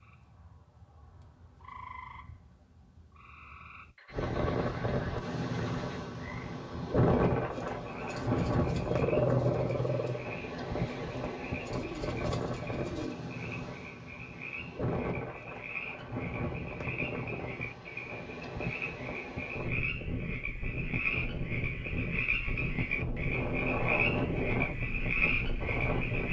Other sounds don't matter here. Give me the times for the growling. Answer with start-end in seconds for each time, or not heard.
8.8-10.2.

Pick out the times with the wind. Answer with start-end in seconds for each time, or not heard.
4.1-26.2.